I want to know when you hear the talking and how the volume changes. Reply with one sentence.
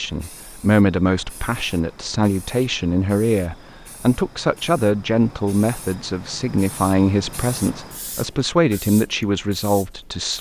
You can hear the talking from 0.0 to 10.3 s, at a steady volume.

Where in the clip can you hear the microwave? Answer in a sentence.
You can't hear the microwave here.